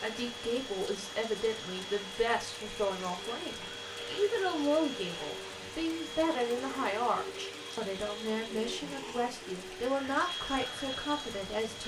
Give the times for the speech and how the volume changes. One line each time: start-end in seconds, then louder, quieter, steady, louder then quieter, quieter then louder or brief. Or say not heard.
0.0-11.8 steady.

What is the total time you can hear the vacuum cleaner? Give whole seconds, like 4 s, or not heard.
12 s.